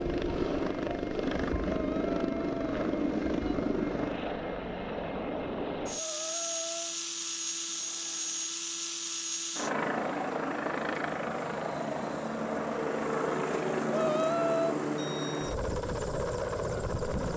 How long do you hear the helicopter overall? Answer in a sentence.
The helicopter can be heard for 17 seconds in total.